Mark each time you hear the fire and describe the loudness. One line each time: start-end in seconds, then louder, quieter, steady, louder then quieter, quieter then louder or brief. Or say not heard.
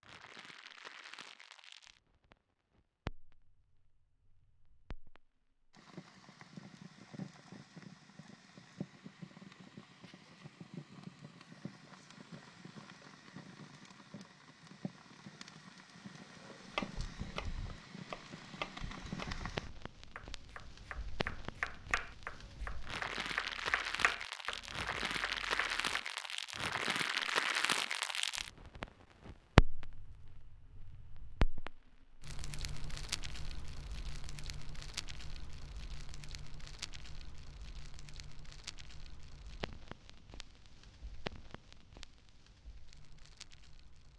0.0-44.1 louder then quieter.